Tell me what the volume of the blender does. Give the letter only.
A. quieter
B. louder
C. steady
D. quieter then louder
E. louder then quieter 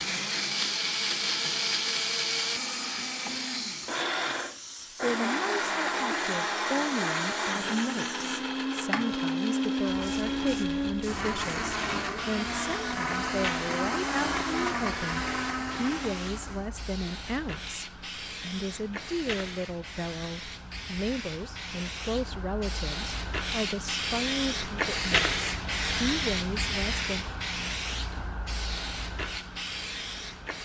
C.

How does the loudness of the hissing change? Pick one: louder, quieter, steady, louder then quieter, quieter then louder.
louder.